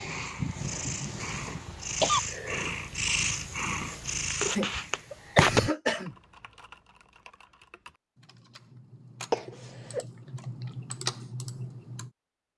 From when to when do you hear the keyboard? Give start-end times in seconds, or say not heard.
6.0-12.1.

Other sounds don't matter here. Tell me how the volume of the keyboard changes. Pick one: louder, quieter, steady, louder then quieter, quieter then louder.
louder.